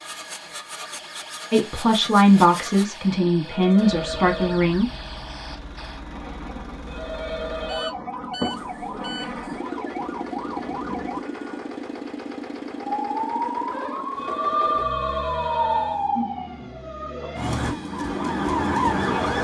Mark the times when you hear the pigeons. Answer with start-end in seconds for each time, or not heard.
not heard.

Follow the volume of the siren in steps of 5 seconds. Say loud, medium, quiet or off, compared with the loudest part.
quiet, medium, loud, loud.